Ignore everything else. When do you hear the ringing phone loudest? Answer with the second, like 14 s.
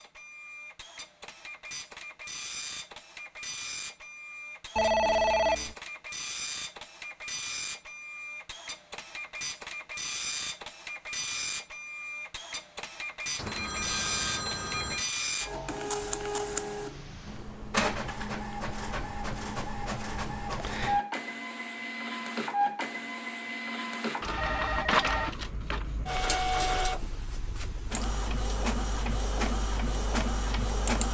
5 s.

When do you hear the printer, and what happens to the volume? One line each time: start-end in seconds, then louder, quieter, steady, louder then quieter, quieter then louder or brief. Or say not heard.
0.0-31.0 louder.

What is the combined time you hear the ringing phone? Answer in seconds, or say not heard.
4 s.